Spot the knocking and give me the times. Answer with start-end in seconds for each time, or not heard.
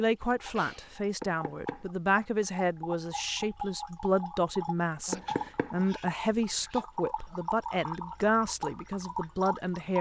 1.2-1.9, 5.1-5.8.